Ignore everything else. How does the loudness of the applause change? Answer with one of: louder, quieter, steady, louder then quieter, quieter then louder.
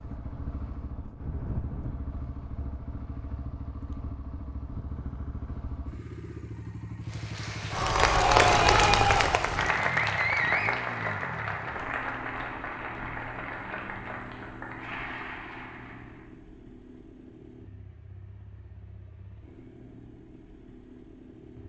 quieter.